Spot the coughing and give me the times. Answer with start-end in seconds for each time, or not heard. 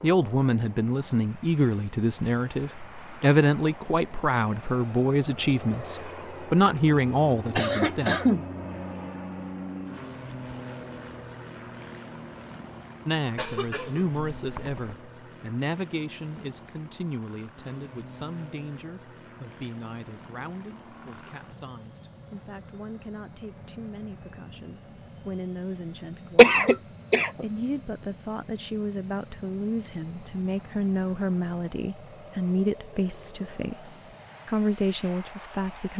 7.5-8.4, 13.3-14.9, 26.4-27.4.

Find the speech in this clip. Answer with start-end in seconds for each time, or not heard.
0.0-8.2, 13.1-35.9.